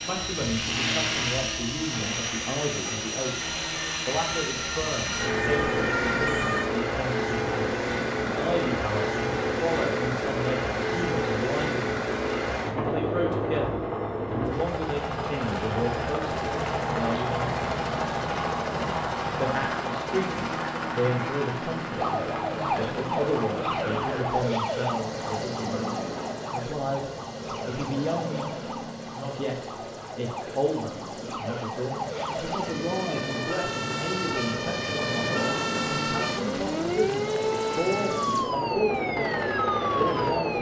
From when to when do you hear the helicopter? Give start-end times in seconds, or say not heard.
0.0-40.5.